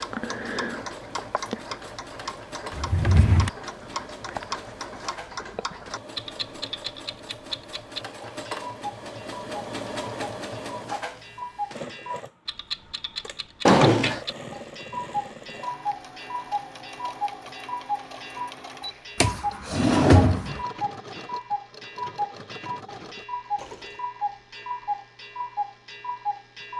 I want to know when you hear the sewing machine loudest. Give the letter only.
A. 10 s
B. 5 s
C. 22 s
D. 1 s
A.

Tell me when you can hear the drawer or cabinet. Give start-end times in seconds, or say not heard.
2.7-3.5, 13.7-14.2, 19.2-20.6.